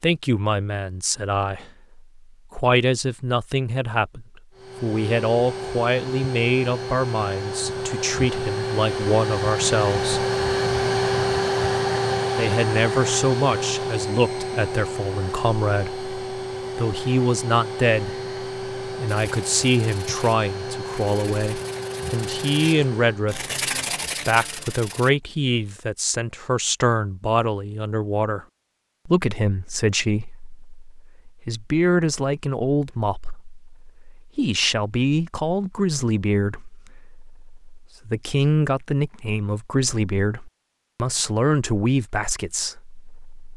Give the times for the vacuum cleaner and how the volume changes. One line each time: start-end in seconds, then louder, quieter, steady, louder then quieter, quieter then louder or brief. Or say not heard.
4.5-23.3 louder then quieter.